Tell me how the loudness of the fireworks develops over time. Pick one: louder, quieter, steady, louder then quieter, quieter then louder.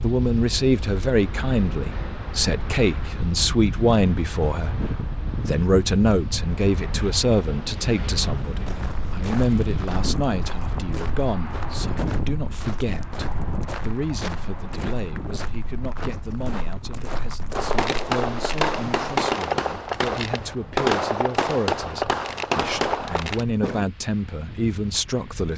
steady.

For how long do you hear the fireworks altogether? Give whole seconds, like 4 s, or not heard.
6 s.